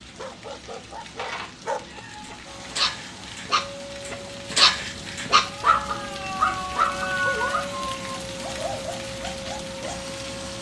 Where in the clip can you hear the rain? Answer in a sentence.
You can hear the rain from 0.0 to 10.5 s.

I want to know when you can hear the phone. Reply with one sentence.
You can't hear the phone here.